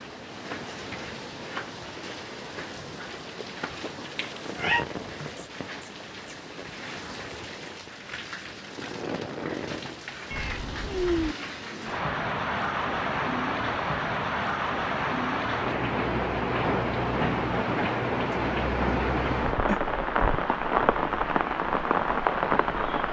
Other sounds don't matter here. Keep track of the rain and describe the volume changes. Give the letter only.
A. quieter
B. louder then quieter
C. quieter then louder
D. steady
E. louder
E.